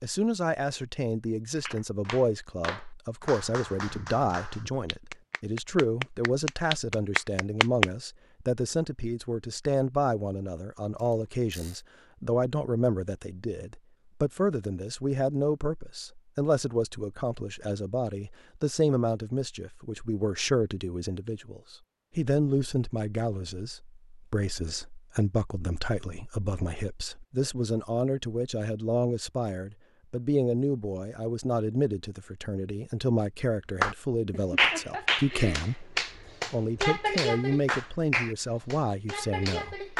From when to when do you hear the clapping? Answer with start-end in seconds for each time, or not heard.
1.6-7.8, 33.8-39.9.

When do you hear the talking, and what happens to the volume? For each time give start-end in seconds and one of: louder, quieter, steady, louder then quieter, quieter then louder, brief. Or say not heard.
0.0-39.9 steady.